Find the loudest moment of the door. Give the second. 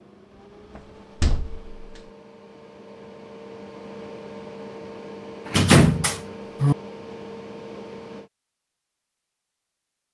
6 s.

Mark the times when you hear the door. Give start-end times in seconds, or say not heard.
0.8-2.0, 5.5-6.8.